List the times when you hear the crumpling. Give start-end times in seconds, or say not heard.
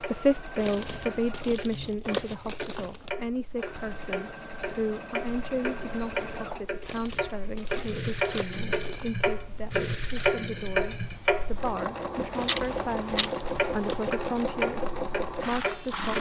0.6-3.1, 6.8-9.1, 12.3-14.6.